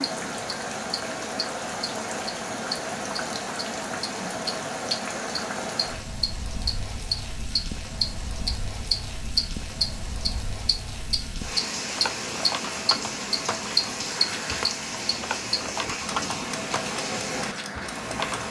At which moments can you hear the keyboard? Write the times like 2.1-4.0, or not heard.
11.8-18.4.